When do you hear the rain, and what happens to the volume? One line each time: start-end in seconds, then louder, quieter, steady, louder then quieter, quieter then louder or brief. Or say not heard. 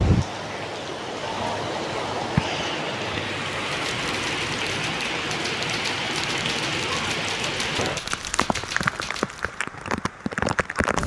0.0-11.0 steady.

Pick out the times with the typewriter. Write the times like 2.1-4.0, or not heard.
3.6-9.6.